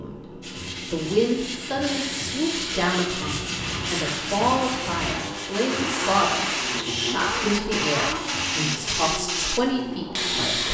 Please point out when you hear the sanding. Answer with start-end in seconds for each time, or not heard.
0.4-9.1.